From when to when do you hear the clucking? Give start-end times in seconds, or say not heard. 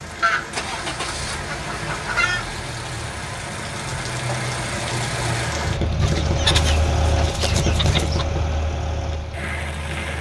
0.2-2.5, 6.0-8.2.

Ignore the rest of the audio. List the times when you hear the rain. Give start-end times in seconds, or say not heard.
0.0-10.1.